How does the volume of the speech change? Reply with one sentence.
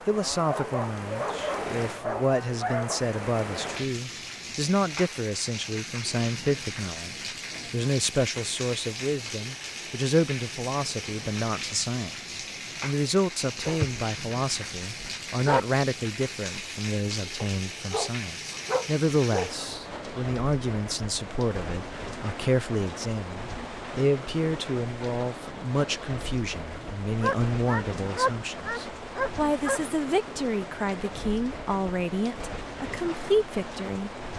The volume of the speech stays about the same.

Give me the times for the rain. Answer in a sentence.
The rain can be heard from 0.0 to 34.3 s.